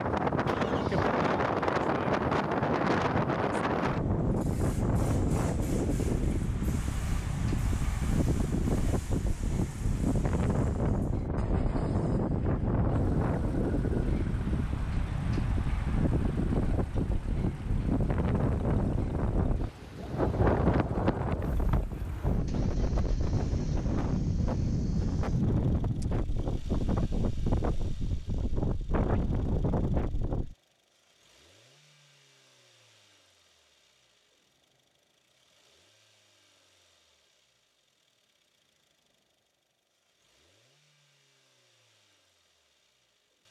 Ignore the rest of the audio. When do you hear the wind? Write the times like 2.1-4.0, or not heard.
0.0-30.6.